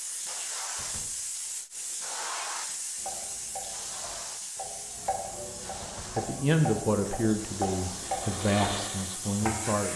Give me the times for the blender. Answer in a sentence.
The blender can be heard from 7.8 to 9.9 s.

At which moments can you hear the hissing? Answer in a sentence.
You can hear the hissing from 0.0 to 9.9 s.